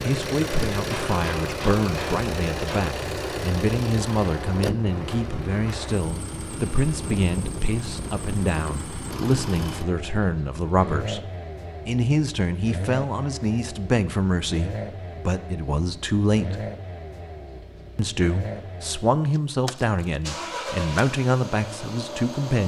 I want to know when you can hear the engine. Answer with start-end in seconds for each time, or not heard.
0.0-22.6.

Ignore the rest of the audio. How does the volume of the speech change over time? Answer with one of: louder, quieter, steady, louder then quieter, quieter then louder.
steady.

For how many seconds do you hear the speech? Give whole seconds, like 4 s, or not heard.
21 s.